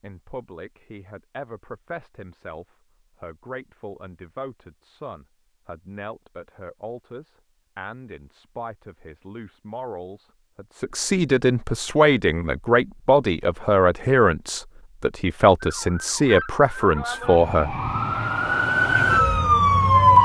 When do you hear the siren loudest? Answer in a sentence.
The loudest moment of the siren is at 20 seconds.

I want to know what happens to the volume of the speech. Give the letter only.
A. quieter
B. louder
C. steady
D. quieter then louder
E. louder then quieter
B.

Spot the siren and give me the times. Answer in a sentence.
The siren can be heard from 15.6 to 20.2 s.